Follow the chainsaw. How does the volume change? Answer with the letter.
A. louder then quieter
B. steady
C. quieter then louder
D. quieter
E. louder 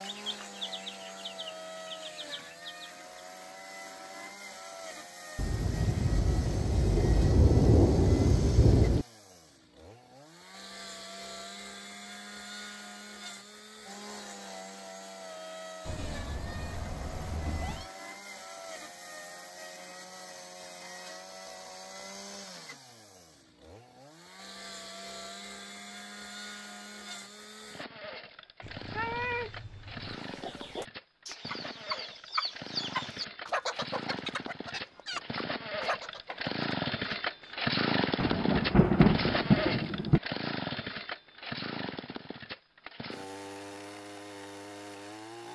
E.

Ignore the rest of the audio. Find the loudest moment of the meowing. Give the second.
29 s.